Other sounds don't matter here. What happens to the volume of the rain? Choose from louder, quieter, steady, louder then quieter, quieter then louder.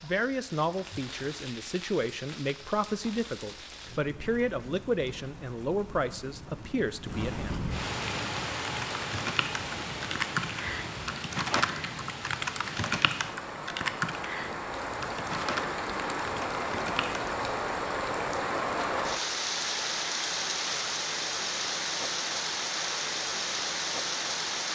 louder.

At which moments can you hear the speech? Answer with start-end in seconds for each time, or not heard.
0.0-7.5.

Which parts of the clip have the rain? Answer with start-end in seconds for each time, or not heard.
0.0-24.7.